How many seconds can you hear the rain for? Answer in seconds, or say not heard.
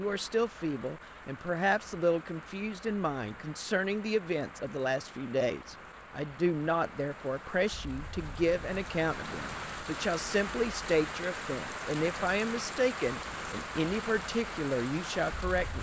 16 s.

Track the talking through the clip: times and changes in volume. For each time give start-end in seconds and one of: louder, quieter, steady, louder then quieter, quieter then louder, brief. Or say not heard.
0.0-15.7 steady.